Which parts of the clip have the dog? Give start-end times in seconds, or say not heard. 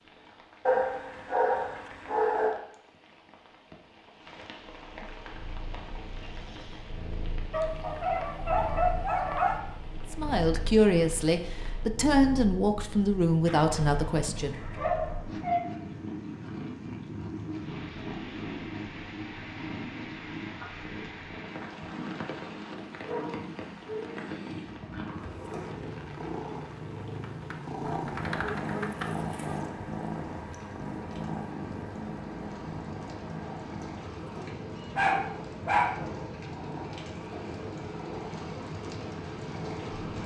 0.7-2.6, 7.5-9.6, 13.4-15.6, 23.1-24.2, 27.8-29.6, 35.0-36.0.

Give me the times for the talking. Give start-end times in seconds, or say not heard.
10.1-14.6.